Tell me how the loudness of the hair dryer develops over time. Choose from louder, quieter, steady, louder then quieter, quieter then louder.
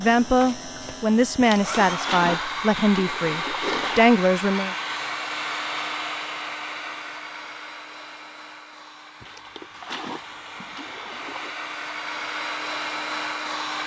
quieter then louder.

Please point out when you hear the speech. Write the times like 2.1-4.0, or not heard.
0.0-4.8.